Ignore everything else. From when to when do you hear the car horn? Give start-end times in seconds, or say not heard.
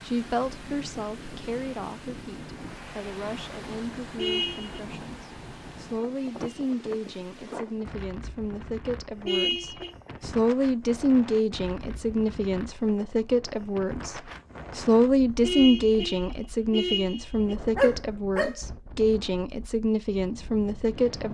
4.2-4.8, 9.2-9.9, 15.4-17.6.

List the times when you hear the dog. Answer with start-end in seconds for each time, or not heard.
17.8-18.6.